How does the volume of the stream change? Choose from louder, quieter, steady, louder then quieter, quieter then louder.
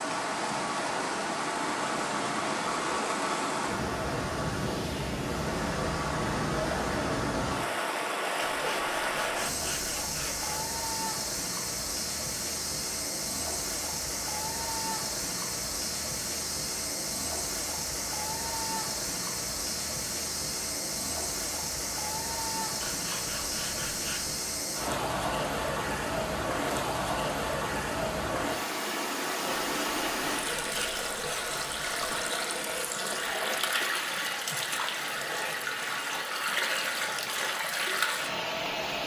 steady.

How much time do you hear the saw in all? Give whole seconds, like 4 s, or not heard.
7 s.